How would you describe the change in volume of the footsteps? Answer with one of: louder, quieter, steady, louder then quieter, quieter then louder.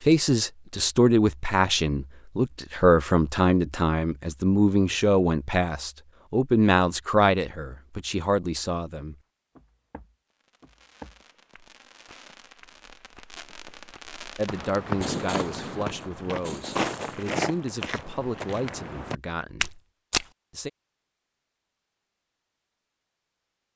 louder.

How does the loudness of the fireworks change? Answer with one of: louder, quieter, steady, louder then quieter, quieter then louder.
louder then quieter.